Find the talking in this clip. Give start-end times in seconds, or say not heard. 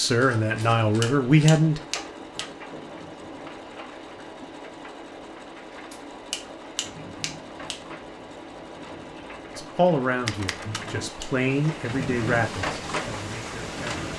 0.0-1.8, 9.6-14.1.